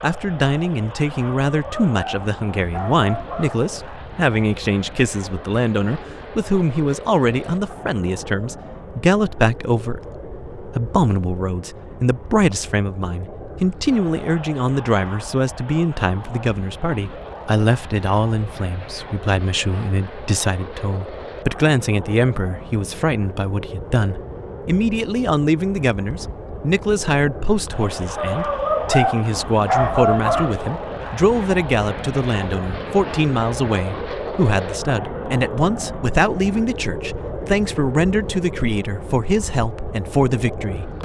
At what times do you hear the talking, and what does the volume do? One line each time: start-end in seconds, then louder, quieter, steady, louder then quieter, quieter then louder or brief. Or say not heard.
0.0-40.9 steady.